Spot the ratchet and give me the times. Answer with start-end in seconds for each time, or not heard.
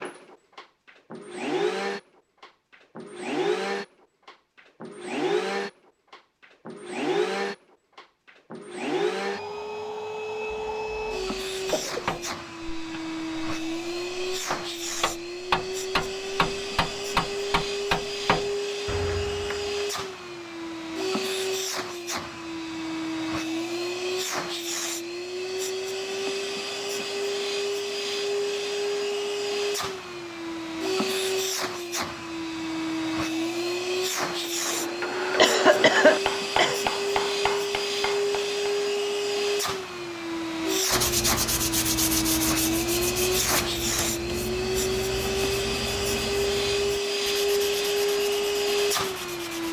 not heard.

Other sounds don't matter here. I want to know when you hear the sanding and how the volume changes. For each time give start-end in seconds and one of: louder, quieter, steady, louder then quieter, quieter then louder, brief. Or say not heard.
40.9-49.6 quieter.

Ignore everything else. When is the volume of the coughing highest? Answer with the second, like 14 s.
36 s.